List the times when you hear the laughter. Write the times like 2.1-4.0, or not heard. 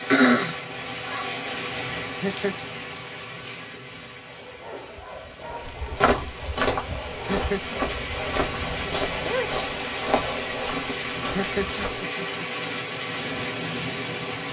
2.0-2.5, 7.1-7.8, 11.2-12.4.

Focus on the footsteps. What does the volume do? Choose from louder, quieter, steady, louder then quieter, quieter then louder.
quieter.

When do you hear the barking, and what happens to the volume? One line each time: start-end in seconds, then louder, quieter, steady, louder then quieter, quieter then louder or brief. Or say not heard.
4.2-10.8 louder.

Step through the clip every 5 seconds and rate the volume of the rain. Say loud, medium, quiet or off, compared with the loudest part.
loud, medium, loud.